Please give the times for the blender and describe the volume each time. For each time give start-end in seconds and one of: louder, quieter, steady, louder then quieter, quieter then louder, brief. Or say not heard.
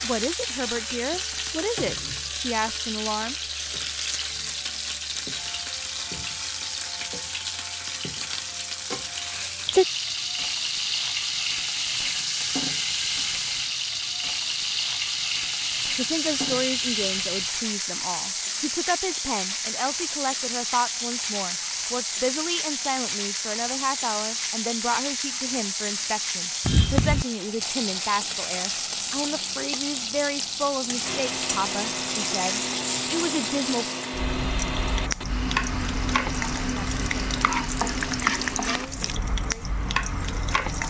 31.0-38.9 steady.